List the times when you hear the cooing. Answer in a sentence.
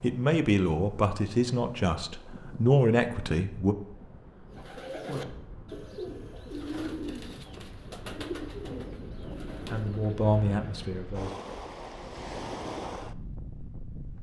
The cooing can be heard from 4.5 to 10.6 s.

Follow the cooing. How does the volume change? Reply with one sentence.
The loudness of the cooing goes down.